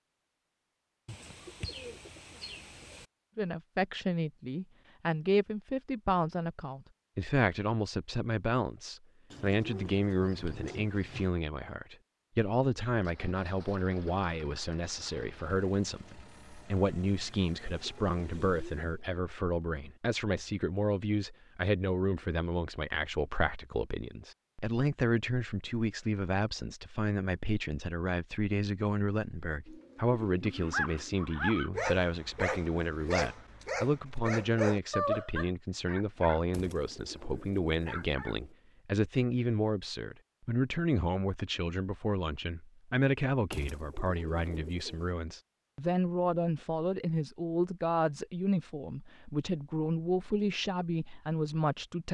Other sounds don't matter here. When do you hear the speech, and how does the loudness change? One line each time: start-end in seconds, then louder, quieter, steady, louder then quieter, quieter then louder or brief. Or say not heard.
3.4-52.1 steady.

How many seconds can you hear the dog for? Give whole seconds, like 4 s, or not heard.
8 s.